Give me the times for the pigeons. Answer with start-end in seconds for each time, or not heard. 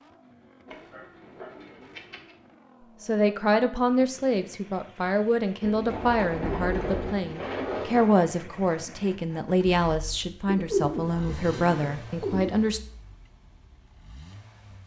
0.7-2.4, 5.6-8.1, 10.4-12.5.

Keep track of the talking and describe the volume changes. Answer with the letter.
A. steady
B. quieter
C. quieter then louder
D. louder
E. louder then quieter
A.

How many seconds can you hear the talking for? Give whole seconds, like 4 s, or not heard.
10 s.